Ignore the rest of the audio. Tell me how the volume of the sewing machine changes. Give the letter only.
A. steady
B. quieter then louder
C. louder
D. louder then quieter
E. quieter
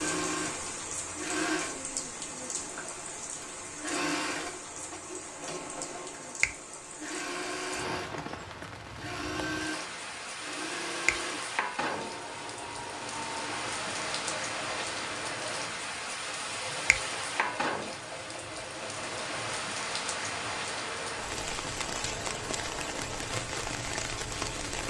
E.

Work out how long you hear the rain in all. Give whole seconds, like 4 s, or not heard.
25 s.